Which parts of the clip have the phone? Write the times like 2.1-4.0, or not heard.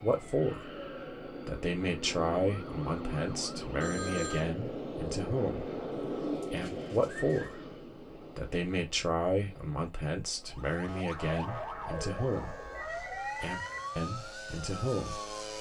3.8-4.5, 12.7-14.0.